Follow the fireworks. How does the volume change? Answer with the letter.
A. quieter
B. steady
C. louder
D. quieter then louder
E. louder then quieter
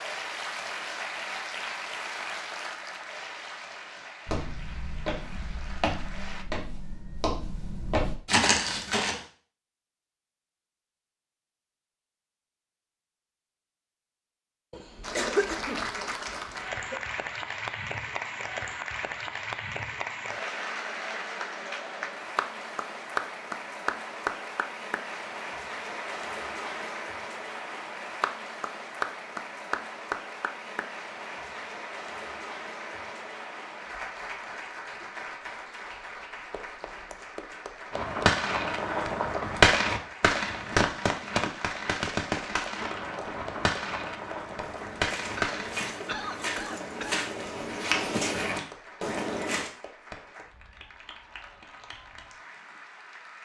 A.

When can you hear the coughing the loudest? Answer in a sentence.
The loudest moment of the coughing is at 15 seconds.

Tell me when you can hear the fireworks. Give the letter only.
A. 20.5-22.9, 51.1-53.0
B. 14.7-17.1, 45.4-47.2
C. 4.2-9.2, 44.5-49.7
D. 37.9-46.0
D.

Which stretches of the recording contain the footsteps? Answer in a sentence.
You can hear the footsteps from 4.2 to 9.2 s and from 44.5 to 49.7 s.